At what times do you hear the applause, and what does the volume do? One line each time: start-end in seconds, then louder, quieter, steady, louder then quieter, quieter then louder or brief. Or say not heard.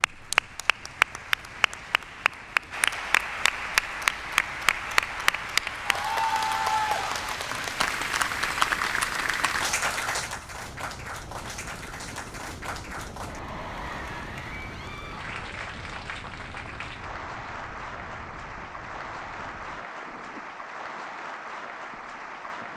0.0-22.7 quieter.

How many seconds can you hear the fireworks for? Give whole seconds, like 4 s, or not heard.
not heard.